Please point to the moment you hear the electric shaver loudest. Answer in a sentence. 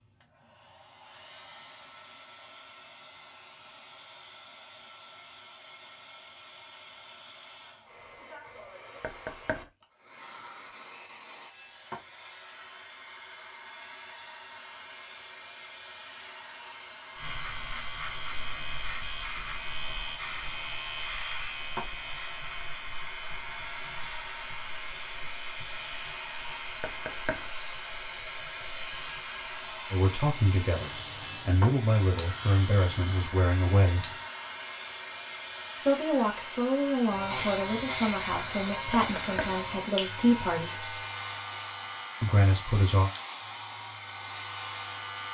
The loudest moment of the electric shaver is at 38 seconds.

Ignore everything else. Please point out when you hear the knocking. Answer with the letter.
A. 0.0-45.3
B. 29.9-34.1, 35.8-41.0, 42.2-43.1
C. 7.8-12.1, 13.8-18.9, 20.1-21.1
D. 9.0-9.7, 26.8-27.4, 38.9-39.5
D.